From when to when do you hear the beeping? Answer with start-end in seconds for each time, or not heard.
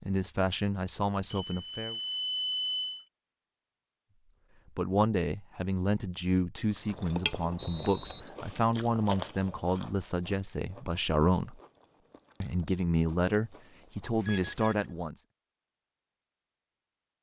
1.3-3.0, 7.5-8.3, 14.2-14.8.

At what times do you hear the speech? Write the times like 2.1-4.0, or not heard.
0.0-1.9, 4.8-11.6, 12.4-15.2.